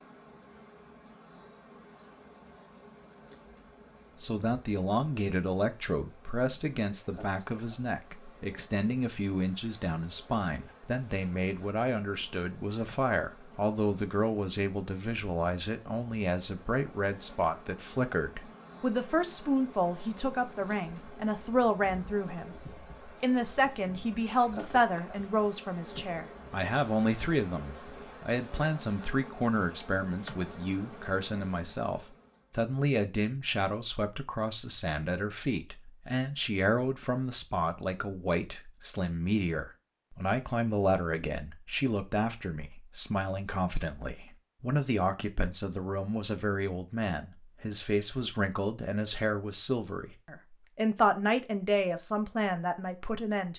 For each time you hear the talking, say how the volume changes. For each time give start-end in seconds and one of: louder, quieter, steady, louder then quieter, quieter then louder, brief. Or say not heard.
4.2-53.5 steady.